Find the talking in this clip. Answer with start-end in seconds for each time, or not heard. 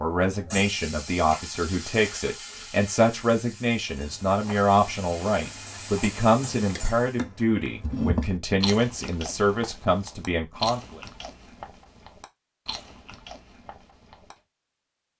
0.0-11.0.